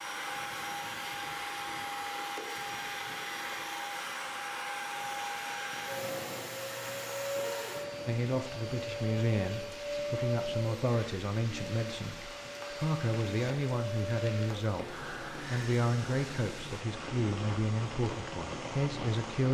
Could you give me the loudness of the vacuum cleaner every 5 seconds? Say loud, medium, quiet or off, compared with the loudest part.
loud, loud, loud, quiet.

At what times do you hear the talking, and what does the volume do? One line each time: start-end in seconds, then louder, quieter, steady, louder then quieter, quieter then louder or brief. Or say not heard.
8.1-19.4 steady.